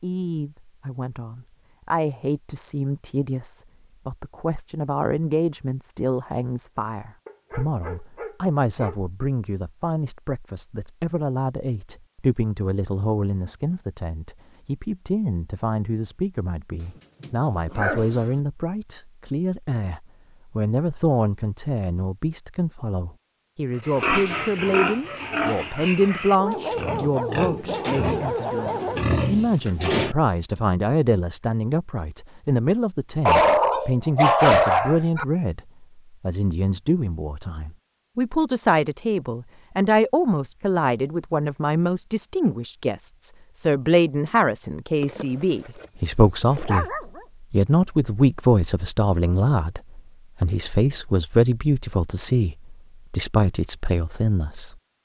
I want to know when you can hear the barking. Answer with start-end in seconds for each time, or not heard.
7.2-8.9, 17.2-18.4, 26.4-29.0, 33.2-35.2, 45.0-47.2.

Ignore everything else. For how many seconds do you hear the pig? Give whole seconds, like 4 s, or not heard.
6 s.